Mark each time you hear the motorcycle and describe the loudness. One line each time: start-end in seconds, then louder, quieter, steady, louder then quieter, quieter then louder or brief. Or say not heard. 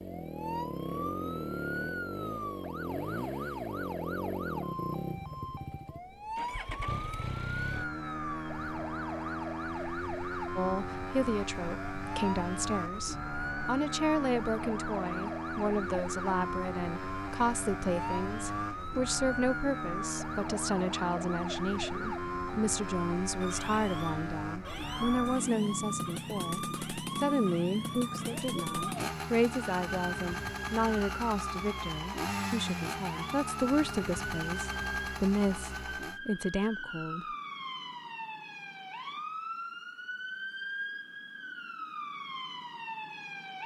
0.0-36.2 steady.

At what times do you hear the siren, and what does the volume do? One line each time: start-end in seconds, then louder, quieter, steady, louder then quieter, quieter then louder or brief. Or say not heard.
0.0-43.6 steady.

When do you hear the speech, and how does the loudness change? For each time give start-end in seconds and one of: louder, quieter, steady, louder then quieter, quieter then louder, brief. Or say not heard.
10.6-37.2 steady.